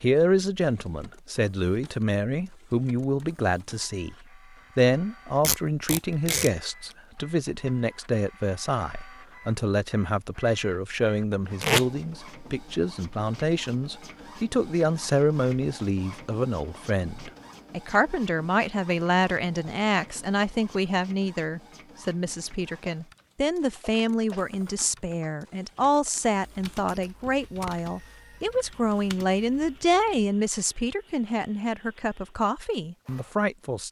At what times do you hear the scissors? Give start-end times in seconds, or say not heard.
not heard.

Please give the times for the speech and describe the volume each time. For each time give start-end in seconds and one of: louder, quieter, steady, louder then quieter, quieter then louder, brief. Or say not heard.
0.0-4.2 steady
4.8-33.8 steady.